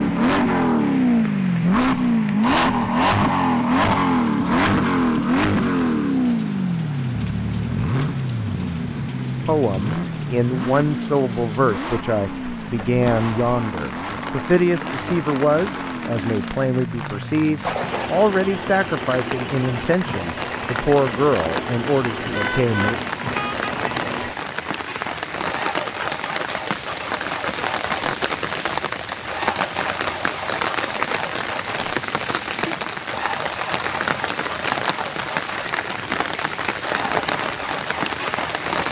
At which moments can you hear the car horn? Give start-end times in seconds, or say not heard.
22.3-23.7.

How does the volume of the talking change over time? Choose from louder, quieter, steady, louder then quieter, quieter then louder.
steady.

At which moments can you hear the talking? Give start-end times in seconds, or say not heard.
9.4-22.9.